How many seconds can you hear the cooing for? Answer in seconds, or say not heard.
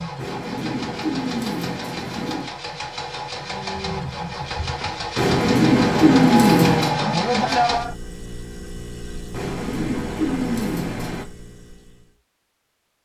6 s.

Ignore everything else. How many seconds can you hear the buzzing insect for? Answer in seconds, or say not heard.
not heard.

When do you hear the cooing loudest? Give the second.
6 s.